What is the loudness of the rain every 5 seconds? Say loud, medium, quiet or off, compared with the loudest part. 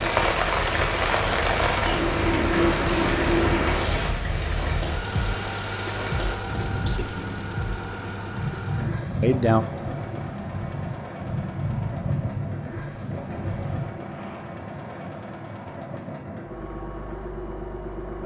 loud, medium, medium, off.